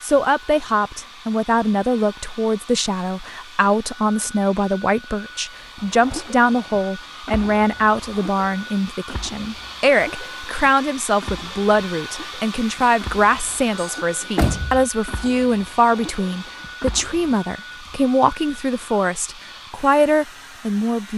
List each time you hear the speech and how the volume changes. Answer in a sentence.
The speech can be heard from 0.0 to 21.1 s, at a steady volume.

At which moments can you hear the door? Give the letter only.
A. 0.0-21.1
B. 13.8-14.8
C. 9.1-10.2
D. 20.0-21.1
B.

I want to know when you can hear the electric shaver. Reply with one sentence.
You can't hear the electric shaver here.